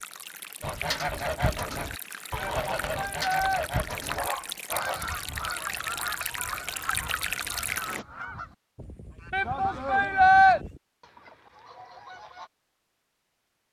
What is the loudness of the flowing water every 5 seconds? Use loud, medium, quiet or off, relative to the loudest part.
medium, loud, off.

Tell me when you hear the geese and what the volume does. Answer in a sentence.
You can hear the geese from 0.6 to 12.5 s, getting quieter.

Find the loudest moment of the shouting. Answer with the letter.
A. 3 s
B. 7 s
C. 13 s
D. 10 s
D.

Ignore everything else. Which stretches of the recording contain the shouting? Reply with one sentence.
The shouting can be heard from 2.4 to 3.6 s and from 9.3 to 10.6 s.